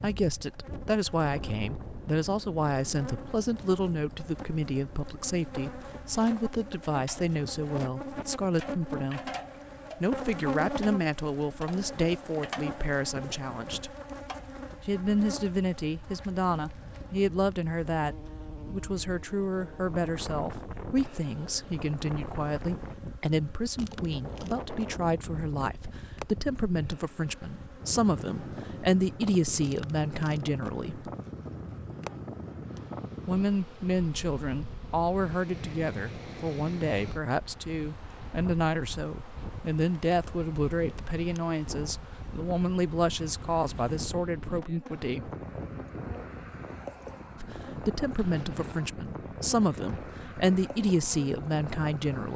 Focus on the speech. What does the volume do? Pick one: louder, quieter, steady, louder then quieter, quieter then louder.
steady.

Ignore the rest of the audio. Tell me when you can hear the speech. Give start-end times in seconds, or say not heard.
0.0-9.3, 10.0-13.9, 14.8-31.1, 33.2-45.3, 47.4-52.3.